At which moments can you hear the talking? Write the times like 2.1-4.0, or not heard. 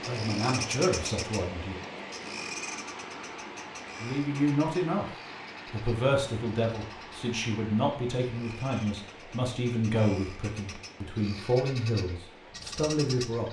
0.0-1.8, 4.0-13.4.